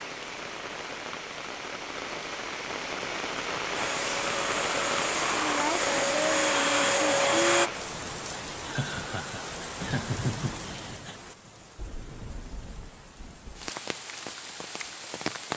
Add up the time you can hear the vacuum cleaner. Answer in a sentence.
The vacuum cleaner can be heard for 4 seconds in total.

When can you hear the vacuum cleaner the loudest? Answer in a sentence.
The loudest moment of the vacuum cleaner is at 7 seconds.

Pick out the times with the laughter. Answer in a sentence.
You can hear the laughter from 8.7 to 11.2 s.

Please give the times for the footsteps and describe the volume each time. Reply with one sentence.
The footsteps can't be heard in this clip.